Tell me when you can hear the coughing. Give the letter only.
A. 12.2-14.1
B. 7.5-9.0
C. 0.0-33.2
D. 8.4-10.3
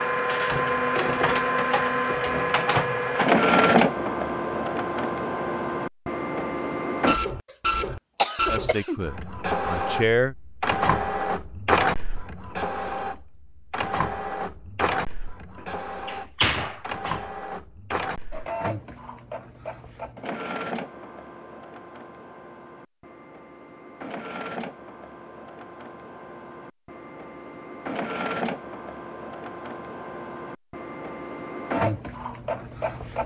B.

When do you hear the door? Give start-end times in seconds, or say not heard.
15.6-17.2.